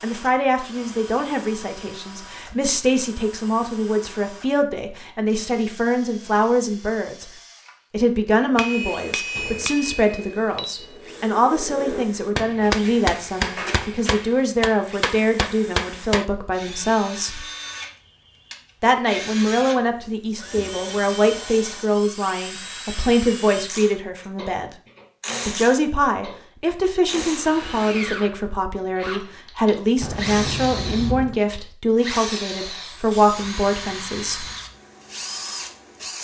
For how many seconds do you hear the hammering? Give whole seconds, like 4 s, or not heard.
8 s.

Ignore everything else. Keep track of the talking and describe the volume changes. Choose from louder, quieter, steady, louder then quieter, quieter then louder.
steady.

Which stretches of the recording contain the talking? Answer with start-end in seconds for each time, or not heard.
0.0-7.3, 7.9-17.4, 18.8-24.7, 25.4-34.5.